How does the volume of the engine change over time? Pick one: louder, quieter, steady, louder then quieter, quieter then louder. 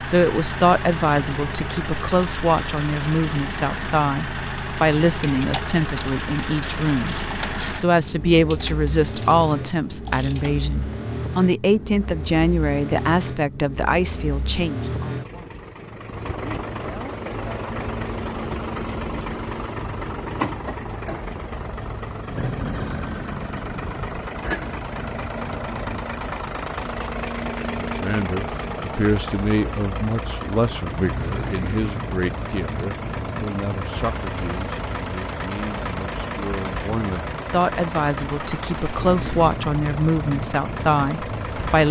steady.